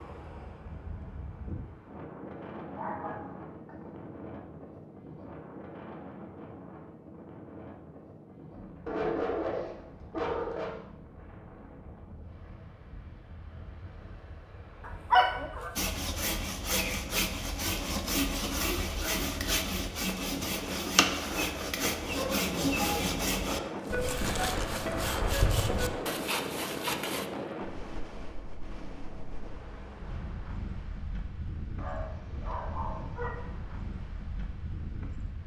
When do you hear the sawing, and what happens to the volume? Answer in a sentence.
You can hear the sawing from 15.8 to 27.3 s, at a steady volume.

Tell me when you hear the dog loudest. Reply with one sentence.
The volume of the dog peaks at 15 seconds.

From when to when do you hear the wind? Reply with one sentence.
The wind can be heard from 0.0 to 35.4 s.